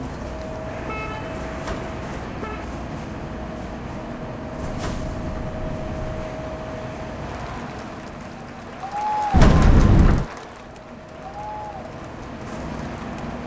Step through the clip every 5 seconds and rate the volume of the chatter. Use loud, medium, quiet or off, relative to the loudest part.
off, loud, medium.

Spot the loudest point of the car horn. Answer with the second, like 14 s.
10 s.